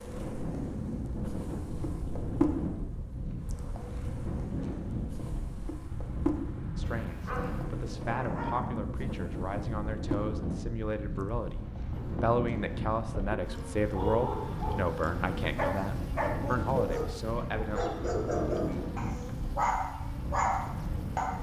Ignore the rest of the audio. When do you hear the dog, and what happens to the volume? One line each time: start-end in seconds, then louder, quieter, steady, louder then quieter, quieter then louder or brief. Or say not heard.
6.8-8.7 brief
13.6-21.3 louder.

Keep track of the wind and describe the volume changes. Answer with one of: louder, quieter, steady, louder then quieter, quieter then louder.
steady.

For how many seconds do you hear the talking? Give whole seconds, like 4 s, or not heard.
11 s.